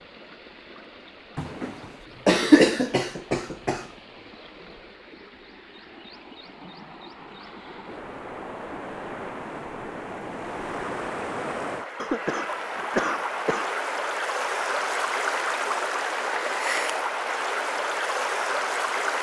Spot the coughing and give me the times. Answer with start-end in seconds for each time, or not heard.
1.4-3.9, 11.9-13.8.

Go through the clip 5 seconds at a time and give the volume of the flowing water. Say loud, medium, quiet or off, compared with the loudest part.
quiet, quiet, loud, loud.